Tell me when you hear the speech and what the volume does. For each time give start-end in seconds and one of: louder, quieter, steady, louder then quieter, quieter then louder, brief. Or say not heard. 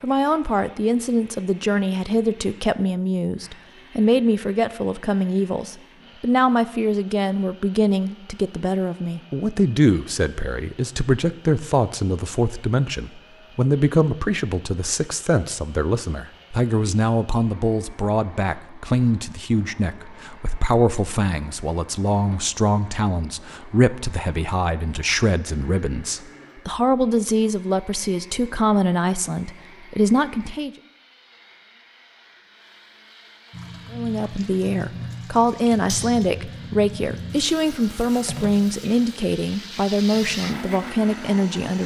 0.0-30.7 steady
33.9-41.8 steady.